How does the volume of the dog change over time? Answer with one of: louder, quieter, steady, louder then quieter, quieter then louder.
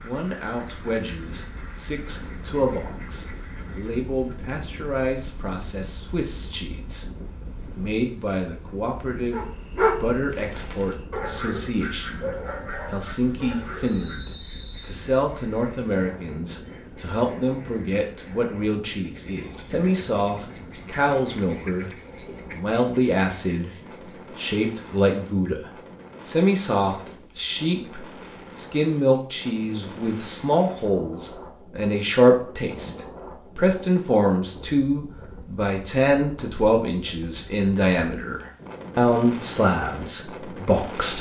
quieter.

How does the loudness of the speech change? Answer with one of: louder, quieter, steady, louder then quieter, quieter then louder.
louder.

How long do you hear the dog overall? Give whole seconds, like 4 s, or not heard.
5 s.